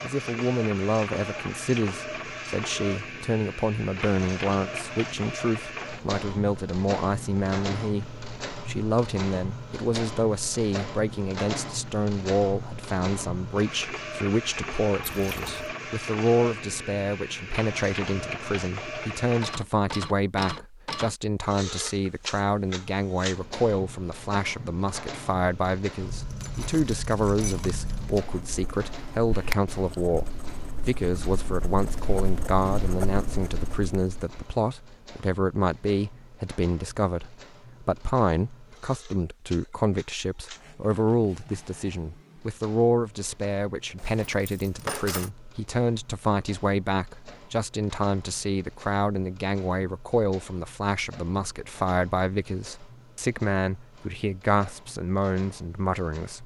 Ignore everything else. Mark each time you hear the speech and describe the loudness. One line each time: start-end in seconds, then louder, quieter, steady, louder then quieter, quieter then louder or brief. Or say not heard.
0.0-56.4 steady.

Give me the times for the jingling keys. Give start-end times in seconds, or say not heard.
15.0-15.7, 26.0-28.3, 44.0-45.3.